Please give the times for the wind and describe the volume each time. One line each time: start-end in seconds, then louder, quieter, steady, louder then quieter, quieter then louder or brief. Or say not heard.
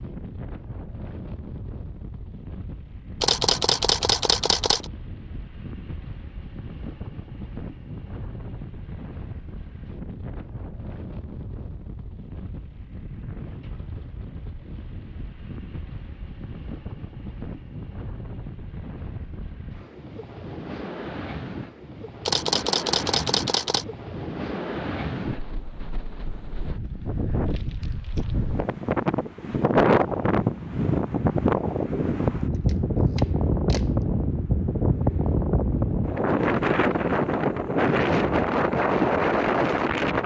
0.0-40.2 louder.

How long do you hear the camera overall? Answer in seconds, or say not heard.
5 s.